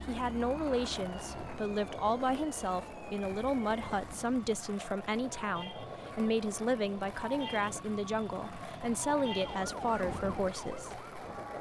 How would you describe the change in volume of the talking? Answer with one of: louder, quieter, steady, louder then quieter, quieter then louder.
steady.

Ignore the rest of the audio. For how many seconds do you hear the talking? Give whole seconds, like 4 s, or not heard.
11 s.